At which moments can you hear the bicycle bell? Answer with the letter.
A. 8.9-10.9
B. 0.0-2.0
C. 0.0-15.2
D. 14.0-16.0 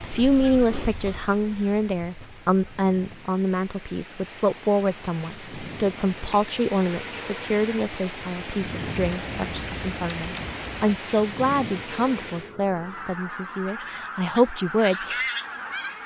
A.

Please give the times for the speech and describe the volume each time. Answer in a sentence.
The speech can be heard from 0.0 to 15.2 s, at a steady volume.